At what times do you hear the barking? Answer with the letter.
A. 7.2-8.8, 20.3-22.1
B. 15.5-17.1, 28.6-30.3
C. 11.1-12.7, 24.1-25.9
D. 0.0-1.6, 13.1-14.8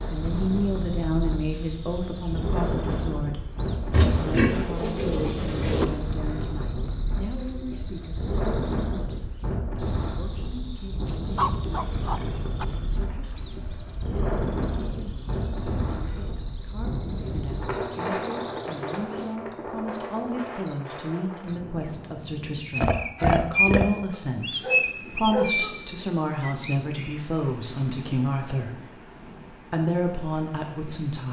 C.